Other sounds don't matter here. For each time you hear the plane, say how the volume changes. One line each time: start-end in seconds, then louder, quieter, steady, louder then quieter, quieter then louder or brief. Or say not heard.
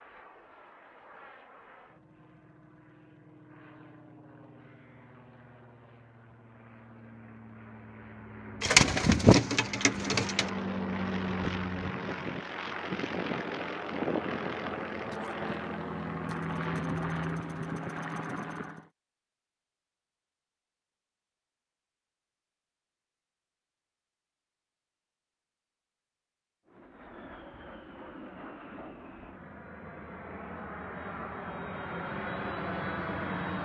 0.0-18.9 louder
26.6-33.6 louder.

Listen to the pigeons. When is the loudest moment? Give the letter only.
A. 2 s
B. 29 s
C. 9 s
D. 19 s
C.